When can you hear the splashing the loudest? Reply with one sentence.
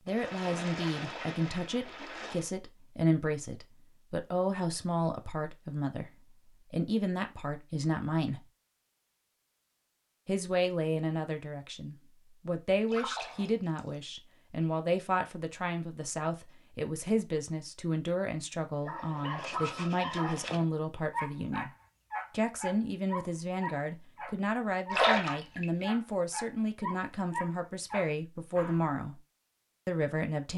The volume of the splashing peaks at 25 seconds.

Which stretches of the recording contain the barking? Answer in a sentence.
You can hear the barking from 18.9 to 28.9 s.